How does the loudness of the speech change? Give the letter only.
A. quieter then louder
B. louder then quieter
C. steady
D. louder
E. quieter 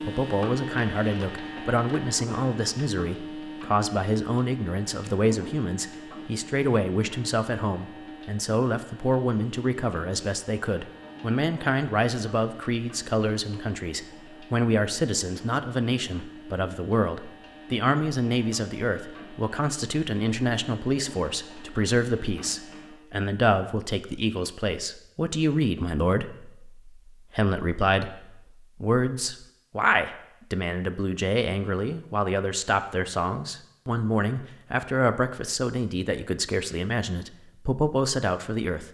C.